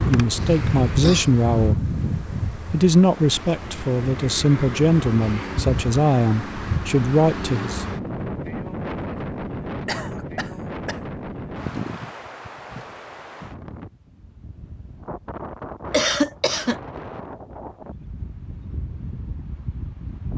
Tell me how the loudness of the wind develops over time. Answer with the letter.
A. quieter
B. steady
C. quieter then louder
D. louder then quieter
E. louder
A.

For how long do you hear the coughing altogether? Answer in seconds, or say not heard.
3 s.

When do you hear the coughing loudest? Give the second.
16 s.